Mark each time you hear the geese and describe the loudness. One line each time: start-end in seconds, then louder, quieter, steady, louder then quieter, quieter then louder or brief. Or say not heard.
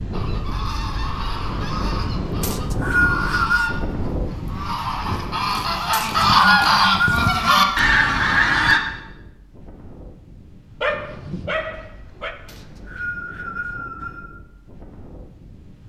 0.1-8.8 louder.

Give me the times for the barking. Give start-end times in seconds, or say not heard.
10.8-12.3.